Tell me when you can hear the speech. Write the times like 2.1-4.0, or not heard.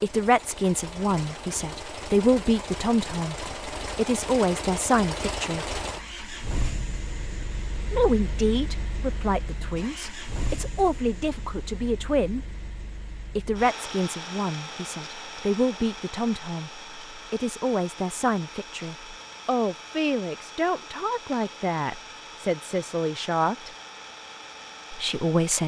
0.0-5.8, 7.9-12.4, 13.3-23.7, 24.9-25.6.